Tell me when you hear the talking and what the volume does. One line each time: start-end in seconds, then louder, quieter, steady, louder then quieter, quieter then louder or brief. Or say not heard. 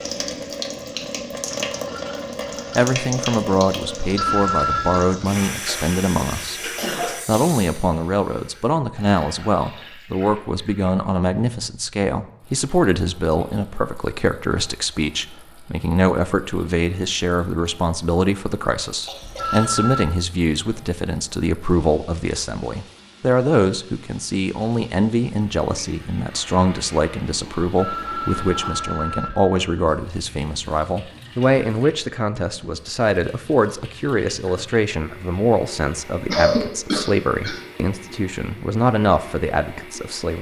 2.8-40.3 steady.